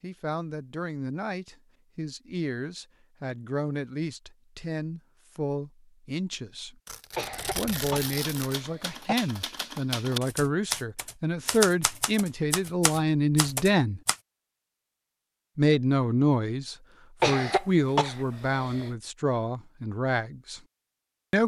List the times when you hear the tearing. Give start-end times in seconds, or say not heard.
6.8-8.6.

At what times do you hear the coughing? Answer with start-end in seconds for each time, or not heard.
7.2-9.2, 17.2-18.9.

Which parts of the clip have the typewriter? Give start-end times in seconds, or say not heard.
7.2-14.2.